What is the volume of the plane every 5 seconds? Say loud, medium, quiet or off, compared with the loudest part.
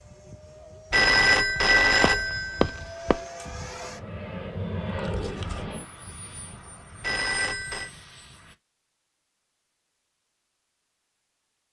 loud, loud, off.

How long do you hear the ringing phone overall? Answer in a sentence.
The ringing phone can be heard for 3 seconds in total.